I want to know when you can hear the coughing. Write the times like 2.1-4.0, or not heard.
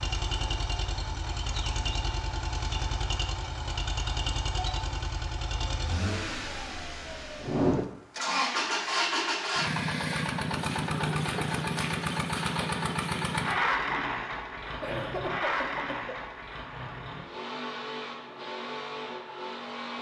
14.8-16.3.